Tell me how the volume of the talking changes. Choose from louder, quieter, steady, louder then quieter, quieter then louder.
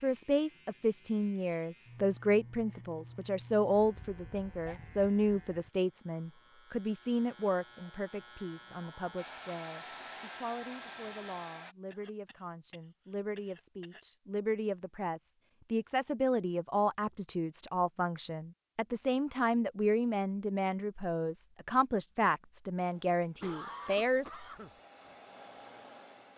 quieter then louder.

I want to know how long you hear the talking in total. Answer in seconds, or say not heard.
24 s.